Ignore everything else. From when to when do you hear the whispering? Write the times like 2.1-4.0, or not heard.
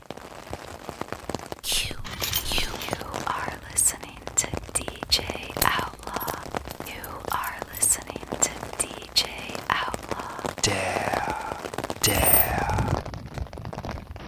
1.6-13.0.